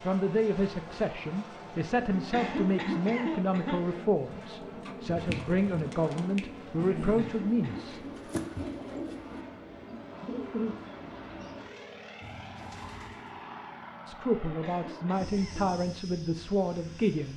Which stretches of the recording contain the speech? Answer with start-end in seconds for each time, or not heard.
0.0-8.0, 14.1-17.3.